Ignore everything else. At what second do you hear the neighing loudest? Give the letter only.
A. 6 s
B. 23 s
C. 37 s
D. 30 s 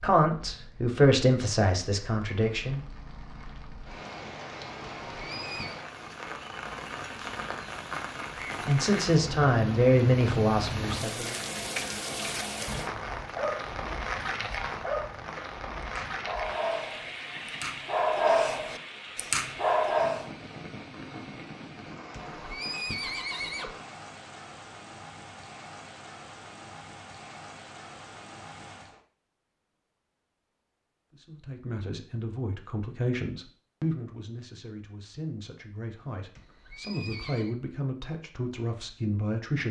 B.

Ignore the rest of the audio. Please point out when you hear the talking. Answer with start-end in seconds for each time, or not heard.
0.0-2.8, 8.7-11.3, 31.1-39.6.